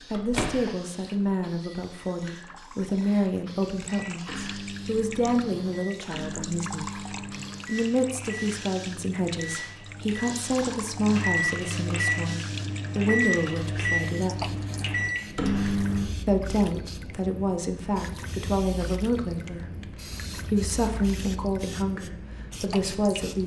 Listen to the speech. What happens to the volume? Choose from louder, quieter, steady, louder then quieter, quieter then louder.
steady.